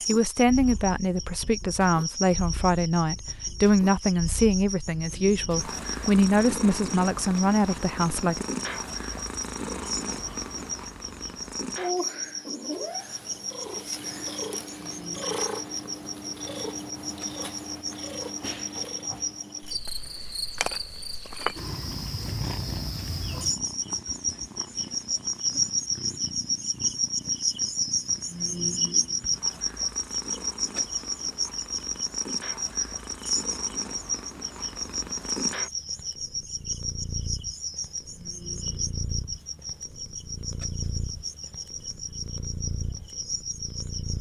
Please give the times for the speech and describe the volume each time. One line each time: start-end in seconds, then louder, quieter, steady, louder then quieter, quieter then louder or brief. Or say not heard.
0.1-8.4 steady.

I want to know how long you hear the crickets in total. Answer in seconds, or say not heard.
44 s.